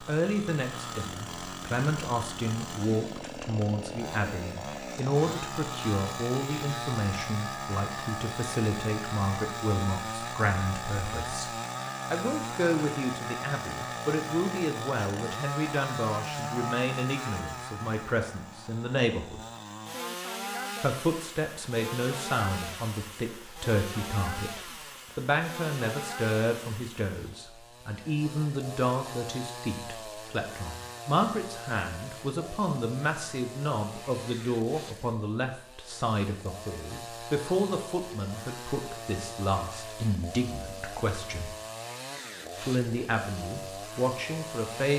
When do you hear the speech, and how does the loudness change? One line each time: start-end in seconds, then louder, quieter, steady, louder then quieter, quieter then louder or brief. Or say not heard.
0.0-19.4 steady
20.8-41.5 steady
42.6-44.9 brief.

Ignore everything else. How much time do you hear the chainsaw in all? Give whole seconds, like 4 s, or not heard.
45 s.